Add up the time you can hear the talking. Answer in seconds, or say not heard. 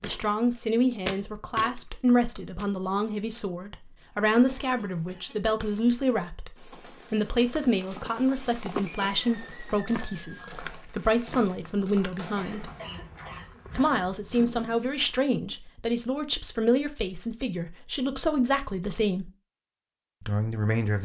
19 s.